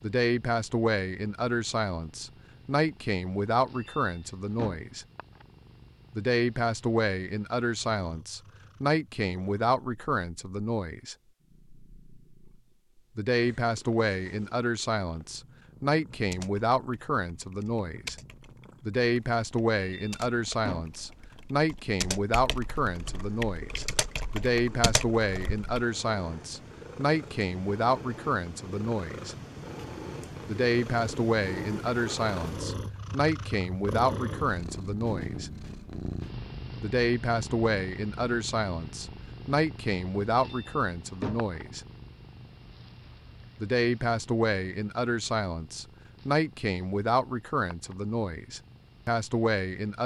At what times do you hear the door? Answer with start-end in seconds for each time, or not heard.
3.8-4.8, 19.8-21.1, 40.4-41.5.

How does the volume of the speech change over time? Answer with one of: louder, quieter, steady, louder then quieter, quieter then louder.
steady.